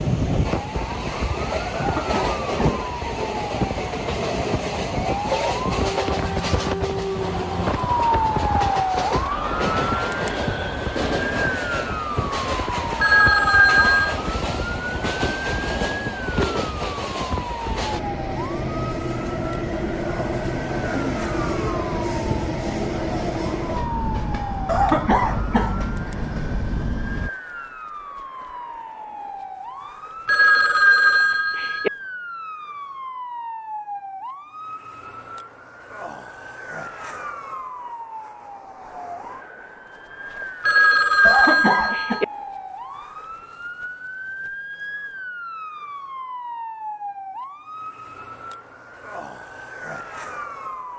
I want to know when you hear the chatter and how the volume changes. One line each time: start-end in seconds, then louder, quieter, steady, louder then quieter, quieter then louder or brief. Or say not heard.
not heard.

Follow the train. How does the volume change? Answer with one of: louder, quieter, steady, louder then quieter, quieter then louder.
steady.